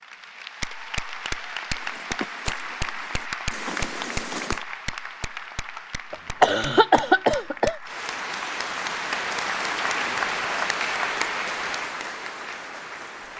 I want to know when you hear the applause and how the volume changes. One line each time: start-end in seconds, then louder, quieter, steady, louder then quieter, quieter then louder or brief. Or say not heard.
0.0-13.3 quieter then louder.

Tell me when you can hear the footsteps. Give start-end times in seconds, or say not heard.
1.7-4.7.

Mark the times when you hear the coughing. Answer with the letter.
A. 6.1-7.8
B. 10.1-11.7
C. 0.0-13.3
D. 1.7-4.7
A.